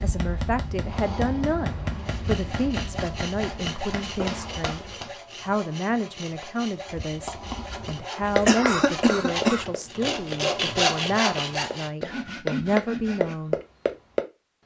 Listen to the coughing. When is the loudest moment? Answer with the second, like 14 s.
9 s.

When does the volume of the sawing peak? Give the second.
11 s.